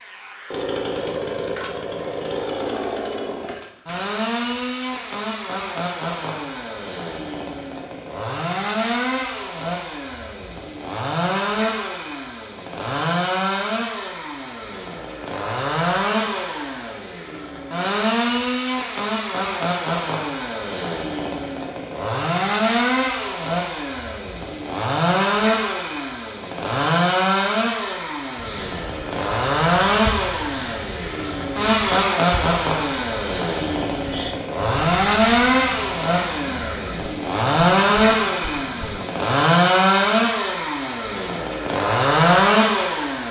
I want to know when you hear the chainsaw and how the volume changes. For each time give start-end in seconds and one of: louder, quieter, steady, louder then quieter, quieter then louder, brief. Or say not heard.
0.0-43.2 louder.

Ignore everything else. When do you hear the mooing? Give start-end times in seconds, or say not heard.
not heard.